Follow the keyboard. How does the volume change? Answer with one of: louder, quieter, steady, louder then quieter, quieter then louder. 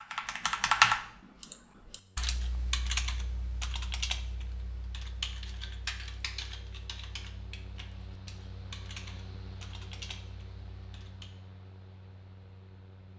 quieter.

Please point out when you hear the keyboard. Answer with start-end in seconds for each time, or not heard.
0.0-11.4.